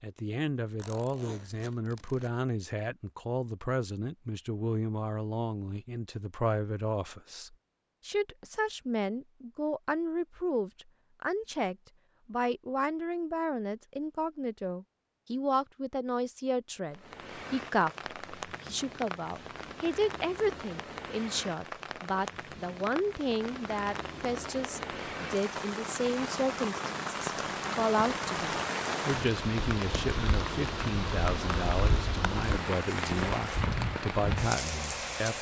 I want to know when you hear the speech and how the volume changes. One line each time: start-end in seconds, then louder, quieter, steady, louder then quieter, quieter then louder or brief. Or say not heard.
0.0-35.3 steady.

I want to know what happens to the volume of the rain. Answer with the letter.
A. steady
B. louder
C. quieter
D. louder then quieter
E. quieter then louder
B.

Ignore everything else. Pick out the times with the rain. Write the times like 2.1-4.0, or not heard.
16.9-35.3.